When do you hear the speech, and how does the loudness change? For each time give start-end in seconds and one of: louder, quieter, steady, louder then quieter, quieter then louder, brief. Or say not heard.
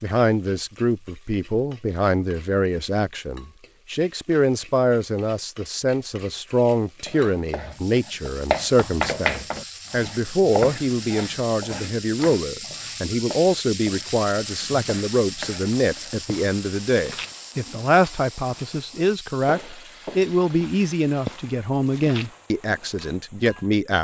0.0-23.9 steady.